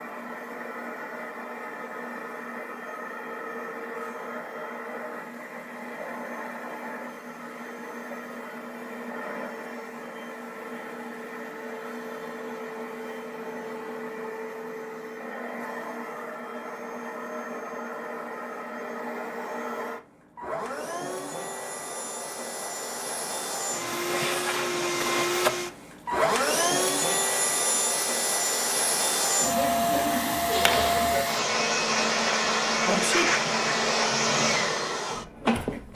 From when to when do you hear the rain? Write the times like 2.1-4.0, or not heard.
not heard.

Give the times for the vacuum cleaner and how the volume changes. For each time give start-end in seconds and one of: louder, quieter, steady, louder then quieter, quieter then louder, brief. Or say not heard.
0.0-35.9 louder.